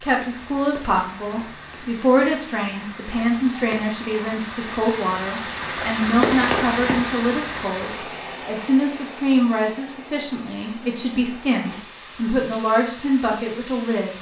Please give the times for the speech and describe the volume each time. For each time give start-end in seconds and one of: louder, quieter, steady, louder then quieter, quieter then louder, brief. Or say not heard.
0.0-14.1 steady.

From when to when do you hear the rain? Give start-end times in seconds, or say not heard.
0.0-14.1.